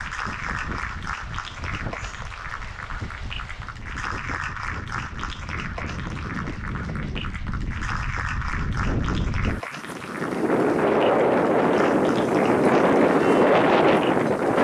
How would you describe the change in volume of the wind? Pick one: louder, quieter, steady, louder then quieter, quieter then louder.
louder.